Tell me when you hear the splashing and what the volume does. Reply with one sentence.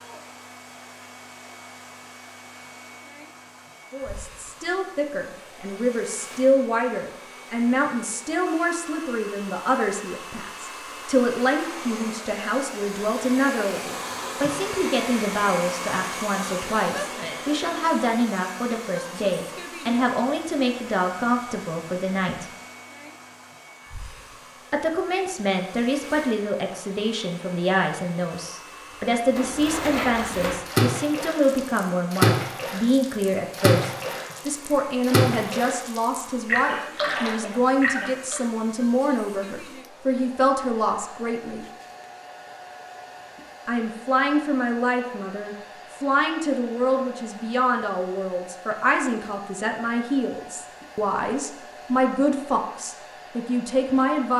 You can hear the splashing from 29.3 to 38.4 s, at a steady volume.